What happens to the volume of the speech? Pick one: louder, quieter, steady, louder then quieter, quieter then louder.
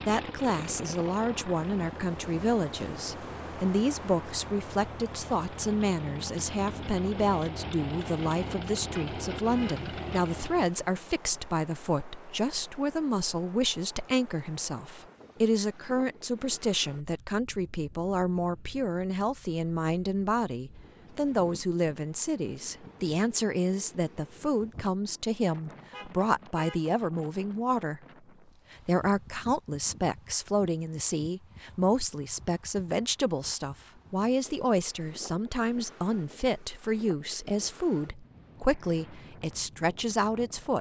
steady.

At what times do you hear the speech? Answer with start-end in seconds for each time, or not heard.
0.1-28.0, 28.7-40.7.